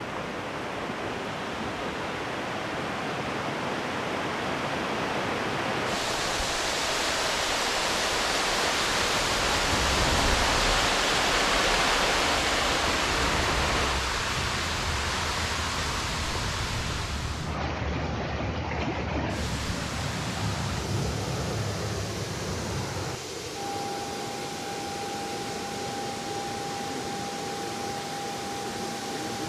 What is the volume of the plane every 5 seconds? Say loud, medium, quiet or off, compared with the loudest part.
medium, loud, loud, medium, medium, medium.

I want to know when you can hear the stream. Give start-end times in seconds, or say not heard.
0.0-29.4.